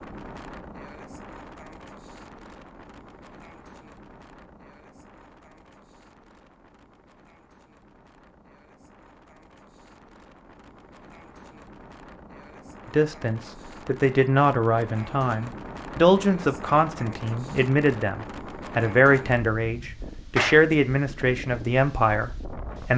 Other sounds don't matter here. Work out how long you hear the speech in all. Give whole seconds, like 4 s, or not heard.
10 s.